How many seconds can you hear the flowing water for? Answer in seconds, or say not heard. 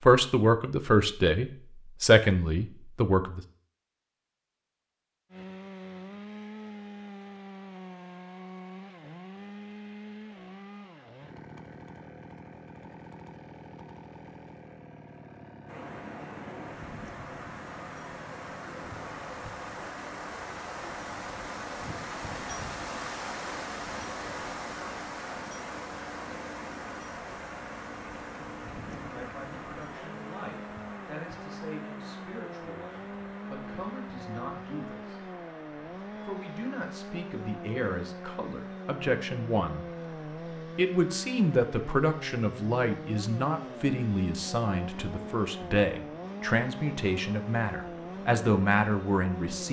34 s.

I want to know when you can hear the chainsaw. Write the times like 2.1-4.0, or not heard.
5.3-49.6.